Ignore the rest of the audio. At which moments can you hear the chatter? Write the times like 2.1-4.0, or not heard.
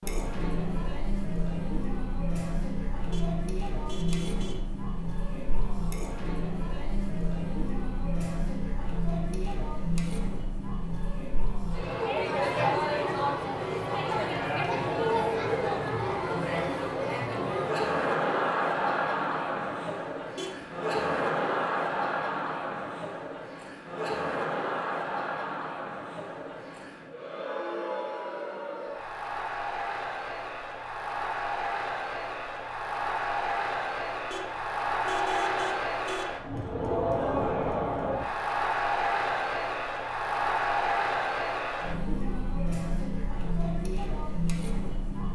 0.0-45.3.